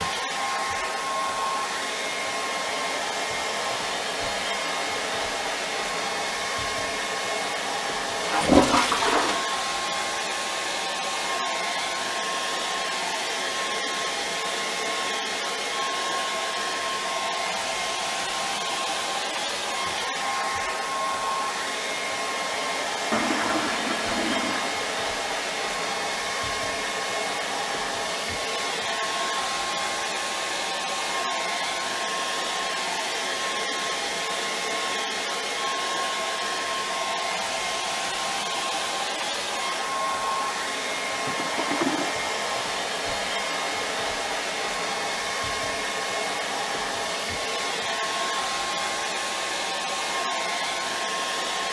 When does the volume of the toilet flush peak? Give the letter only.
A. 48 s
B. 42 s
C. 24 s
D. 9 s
D.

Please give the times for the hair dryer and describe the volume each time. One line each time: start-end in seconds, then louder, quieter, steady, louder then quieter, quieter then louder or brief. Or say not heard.
0.0-51.6 steady.